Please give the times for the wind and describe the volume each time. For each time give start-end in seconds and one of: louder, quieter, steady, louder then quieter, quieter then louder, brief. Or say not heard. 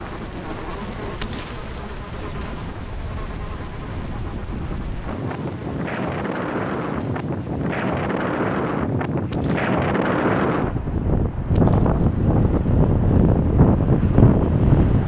0.0-15.0 louder.